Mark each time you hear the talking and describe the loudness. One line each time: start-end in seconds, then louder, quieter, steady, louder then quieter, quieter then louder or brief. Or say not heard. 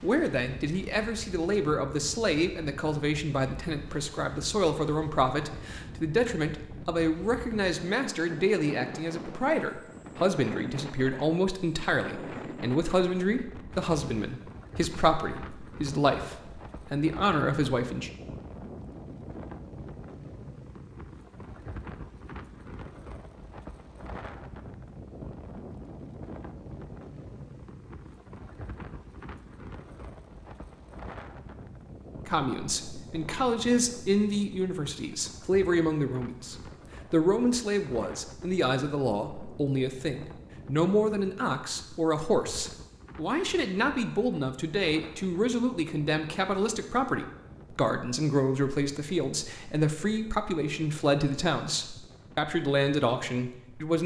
0.0-18.1 steady
32.2-54.0 steady.